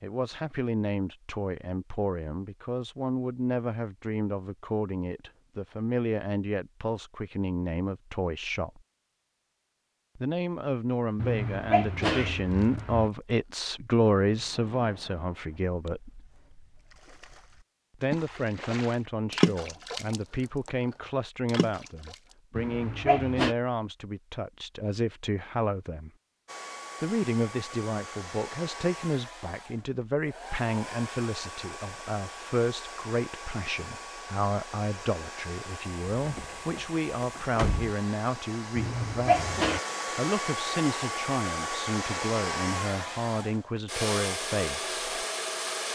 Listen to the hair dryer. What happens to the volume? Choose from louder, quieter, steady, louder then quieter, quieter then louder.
louder.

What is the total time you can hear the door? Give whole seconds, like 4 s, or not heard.
2 s.